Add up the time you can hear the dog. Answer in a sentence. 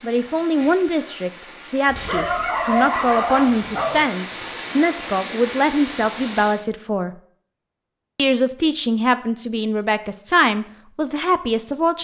You can hear the dog for 2 seconds altogether.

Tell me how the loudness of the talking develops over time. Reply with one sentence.
The loudness of the talking stays about the same.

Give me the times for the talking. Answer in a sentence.
You can hear the talking from 0.0 to 7.2 s and from 8.2 to 11.9 s.